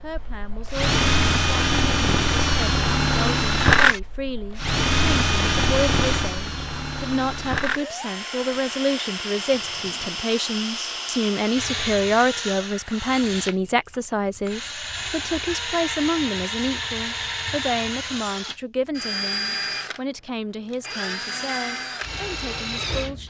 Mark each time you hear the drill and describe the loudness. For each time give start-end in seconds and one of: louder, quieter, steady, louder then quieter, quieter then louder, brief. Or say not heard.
0.0-23.2 quieter.